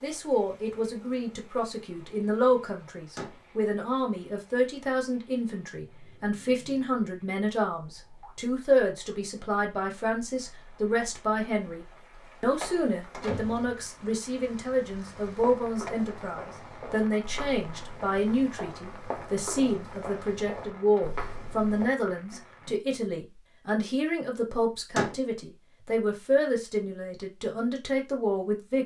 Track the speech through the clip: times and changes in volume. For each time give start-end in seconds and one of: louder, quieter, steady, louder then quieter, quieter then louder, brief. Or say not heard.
0.0-28.8 steady.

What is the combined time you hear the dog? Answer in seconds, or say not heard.
not heard.